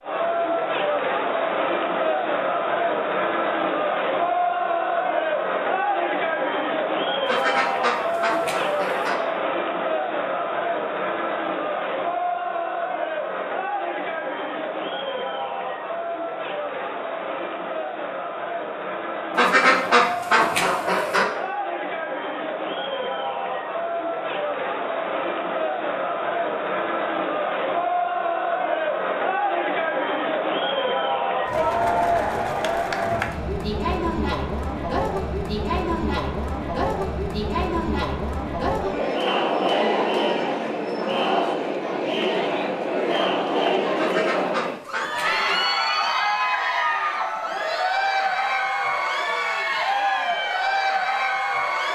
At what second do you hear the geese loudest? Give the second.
20 s.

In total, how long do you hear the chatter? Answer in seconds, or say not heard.
52 s.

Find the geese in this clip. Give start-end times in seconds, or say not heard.
7.2-9.2, 19.4-21.2, 44.0-45.7.